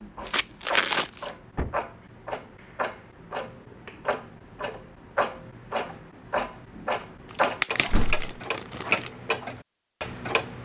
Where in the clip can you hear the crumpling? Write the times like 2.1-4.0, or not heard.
0.2-1.4, 7.3-9.1.